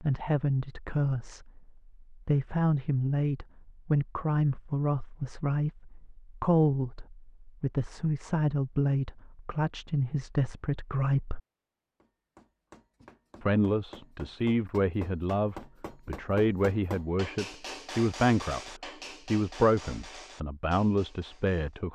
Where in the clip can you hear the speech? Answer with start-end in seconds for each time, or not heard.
0.0-11.4, 13.4-18.6, 19.2-21.9.